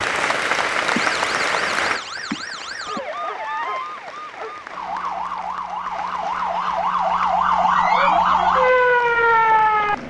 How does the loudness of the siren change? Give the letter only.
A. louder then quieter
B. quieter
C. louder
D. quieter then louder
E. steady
C.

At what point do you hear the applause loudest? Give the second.
1 s.